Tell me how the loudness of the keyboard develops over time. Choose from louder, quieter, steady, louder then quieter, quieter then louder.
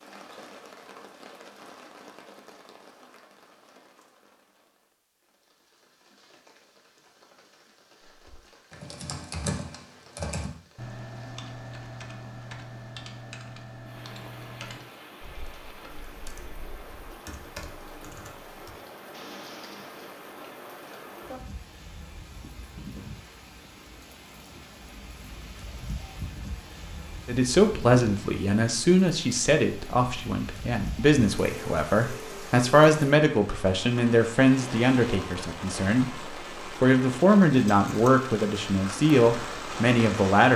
quieter.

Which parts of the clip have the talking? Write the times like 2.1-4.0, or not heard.
27.2-40.5.